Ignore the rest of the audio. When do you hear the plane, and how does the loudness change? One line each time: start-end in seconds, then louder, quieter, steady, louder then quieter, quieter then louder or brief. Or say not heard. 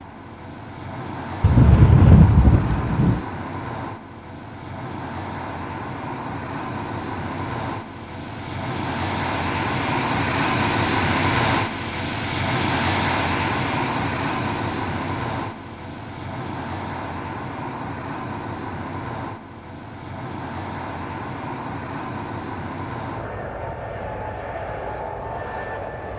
0.0-26.1 louder then quieter.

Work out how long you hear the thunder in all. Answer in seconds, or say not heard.
2 s.